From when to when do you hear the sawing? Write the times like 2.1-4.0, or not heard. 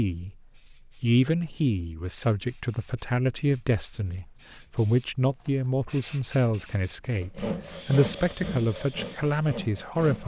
7.2-10.2.